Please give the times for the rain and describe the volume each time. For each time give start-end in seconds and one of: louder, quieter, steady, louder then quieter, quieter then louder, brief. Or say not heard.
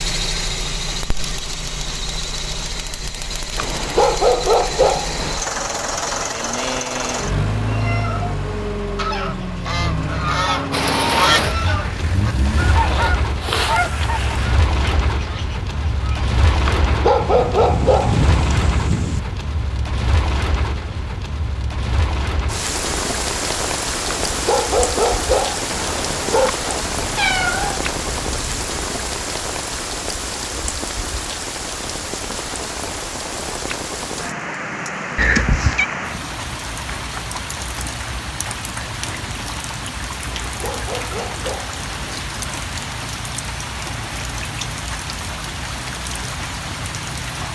10.7-47.5 steady.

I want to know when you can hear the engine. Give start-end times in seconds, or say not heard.
0.0-12.8.